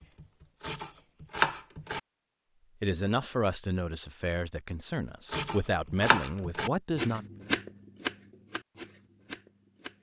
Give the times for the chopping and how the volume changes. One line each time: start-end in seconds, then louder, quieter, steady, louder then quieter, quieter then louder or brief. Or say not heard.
0.0-2.0 brief
5.2-9.9 quieter.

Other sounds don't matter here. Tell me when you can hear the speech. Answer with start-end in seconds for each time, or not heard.
2.8-7.3.